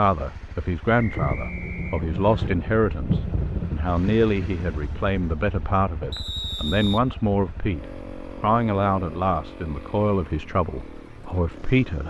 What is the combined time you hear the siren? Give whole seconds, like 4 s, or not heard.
not heard.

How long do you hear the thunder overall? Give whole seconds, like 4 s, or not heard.
4 s.